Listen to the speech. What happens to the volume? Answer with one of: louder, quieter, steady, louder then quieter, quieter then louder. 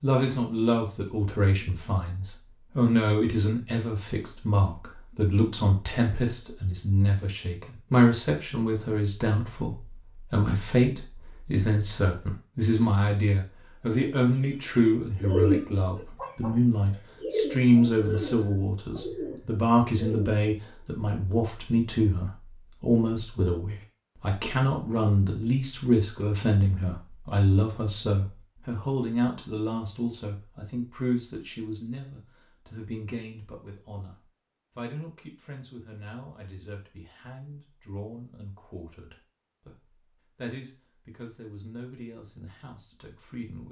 quieter.